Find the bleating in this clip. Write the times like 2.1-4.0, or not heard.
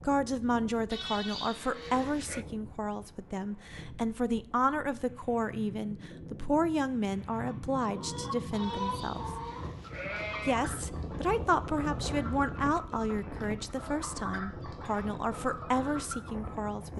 0.9-2.5, 8.5-10.6.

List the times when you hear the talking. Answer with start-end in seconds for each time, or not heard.
0.0-9.3, 10.4-16.9.